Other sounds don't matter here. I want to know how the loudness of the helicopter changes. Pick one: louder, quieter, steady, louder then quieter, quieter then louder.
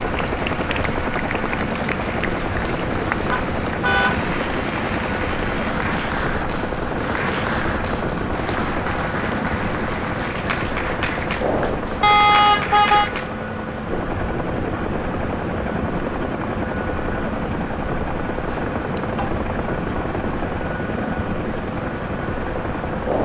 steady.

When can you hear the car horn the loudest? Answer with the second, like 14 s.
12 s.